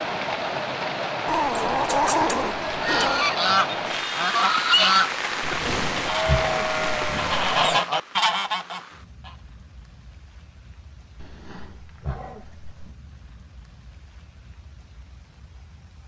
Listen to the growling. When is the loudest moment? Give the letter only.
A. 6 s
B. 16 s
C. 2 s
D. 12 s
C.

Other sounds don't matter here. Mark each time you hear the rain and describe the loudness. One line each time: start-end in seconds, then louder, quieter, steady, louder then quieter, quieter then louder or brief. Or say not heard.
0.0-16.0 quieter.